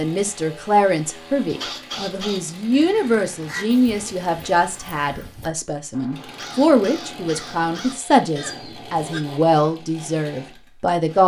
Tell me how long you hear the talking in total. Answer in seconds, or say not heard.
11 s.